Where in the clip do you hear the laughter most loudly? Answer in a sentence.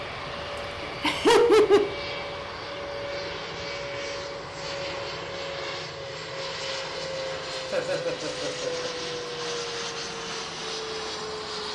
The volume of the laughter peaks at 1 second.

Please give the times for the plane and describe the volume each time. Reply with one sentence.
The plane can be heard from 0.0 to 11.7 s, at a steady volume.